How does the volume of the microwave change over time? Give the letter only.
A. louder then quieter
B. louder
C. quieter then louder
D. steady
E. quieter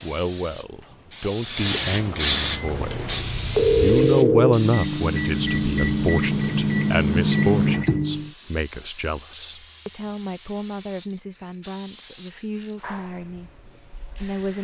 B.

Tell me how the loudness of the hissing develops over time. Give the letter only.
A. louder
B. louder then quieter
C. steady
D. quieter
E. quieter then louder
D.